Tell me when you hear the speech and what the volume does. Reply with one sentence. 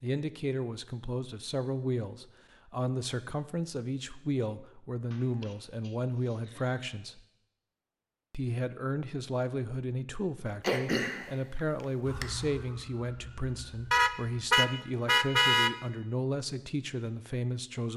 You can hear the speech from 0.0 to 7.2 s, at a steady volume; and from 8.3 to 17.9 s, at a steady volume.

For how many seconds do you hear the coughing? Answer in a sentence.
You can hear the coughing for 3 seconds altogether.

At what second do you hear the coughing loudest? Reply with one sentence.
The volume of the coughing peaks at 11 seconds.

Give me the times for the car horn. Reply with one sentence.
The car horn can be heard from 13.9 to 15.7 s.